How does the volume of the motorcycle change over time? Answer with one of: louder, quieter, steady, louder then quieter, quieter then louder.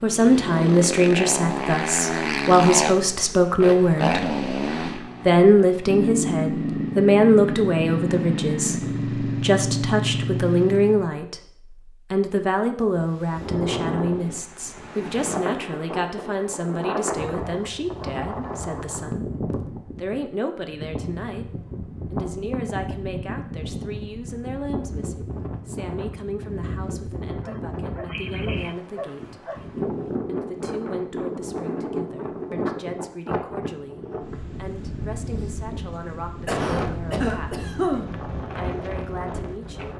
steady.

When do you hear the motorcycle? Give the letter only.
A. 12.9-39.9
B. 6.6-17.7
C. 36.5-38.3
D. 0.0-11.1
D.